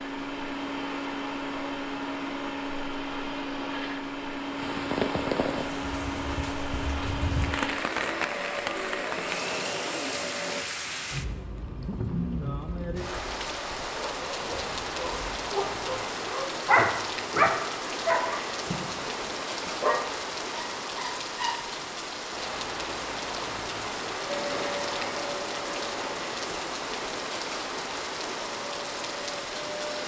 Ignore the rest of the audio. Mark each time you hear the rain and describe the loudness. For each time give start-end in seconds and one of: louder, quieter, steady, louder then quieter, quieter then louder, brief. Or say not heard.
4.5-30.0 steady.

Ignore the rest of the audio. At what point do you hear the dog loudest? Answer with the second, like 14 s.
17 s.